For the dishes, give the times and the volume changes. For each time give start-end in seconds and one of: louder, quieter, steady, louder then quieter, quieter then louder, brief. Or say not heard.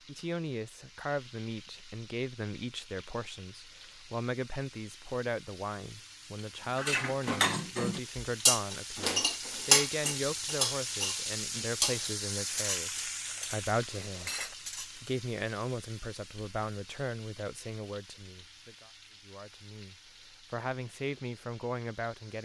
6.8-15.1 quieter.